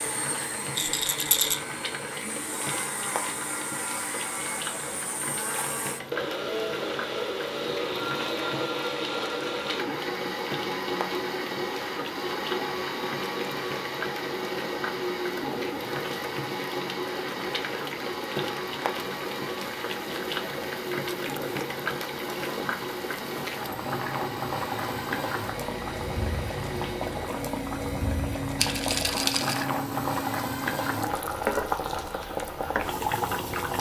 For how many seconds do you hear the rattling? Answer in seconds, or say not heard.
2 s.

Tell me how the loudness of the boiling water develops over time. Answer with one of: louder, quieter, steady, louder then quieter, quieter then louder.
louder.